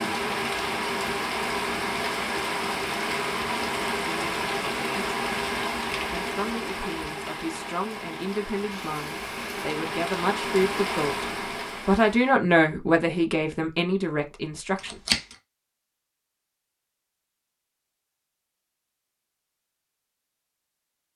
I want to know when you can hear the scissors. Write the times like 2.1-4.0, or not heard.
14.8-15.3.